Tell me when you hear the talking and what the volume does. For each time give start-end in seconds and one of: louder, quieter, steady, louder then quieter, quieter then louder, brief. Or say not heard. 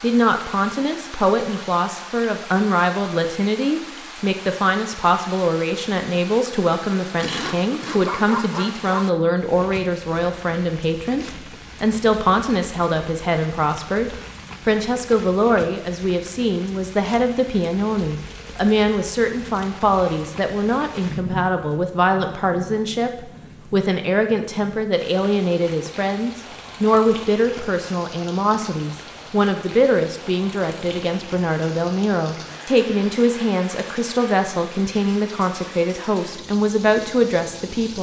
0.0-37.9 steady.